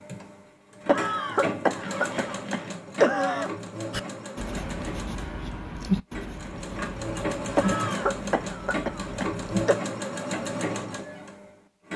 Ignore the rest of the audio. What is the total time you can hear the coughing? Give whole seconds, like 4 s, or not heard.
5 s.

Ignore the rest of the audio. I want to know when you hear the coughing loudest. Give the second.
3 s.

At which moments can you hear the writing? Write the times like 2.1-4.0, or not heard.
3.9-9.7.